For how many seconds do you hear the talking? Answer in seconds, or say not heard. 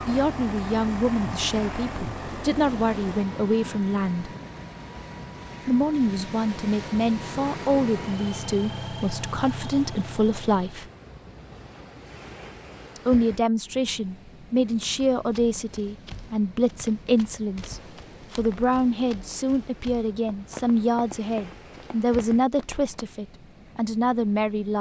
21 s.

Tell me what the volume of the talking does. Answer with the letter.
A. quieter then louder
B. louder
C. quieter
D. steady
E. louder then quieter
D.